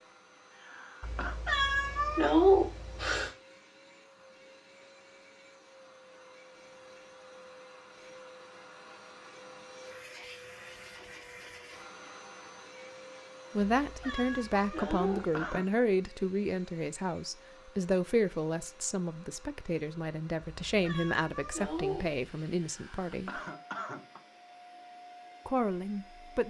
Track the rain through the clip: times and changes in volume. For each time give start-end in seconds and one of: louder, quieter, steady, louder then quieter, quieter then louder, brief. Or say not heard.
not heard.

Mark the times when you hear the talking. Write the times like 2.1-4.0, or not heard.
13.6-23.4, 25.4-26.4.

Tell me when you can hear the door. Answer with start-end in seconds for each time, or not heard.
not heard.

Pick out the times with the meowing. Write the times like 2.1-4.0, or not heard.
1.0-3.3, 13.7-15.4, 20.6-22.2.